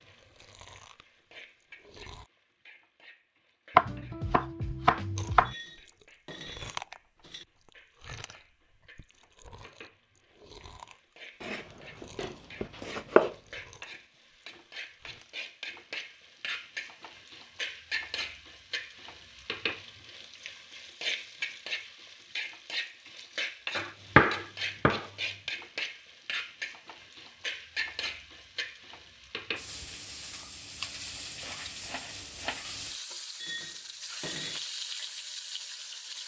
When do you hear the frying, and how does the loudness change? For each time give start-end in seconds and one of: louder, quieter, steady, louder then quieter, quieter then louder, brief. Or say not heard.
0.0-36.2 louder.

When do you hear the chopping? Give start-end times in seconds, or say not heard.
3.8-5.5, 11.4-13.3, 23.8-25.1, 31.1-32.6.